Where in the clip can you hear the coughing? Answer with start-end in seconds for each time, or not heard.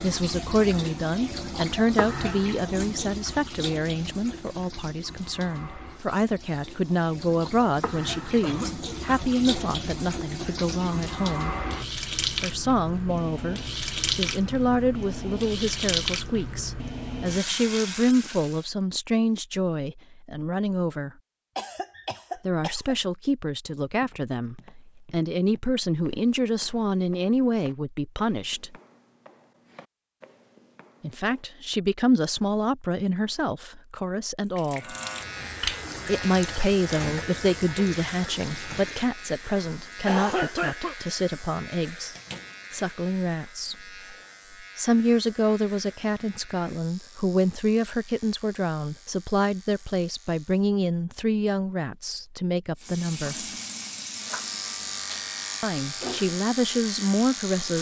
8.4-9.2, 21.6-22.9, 39.5-41.0.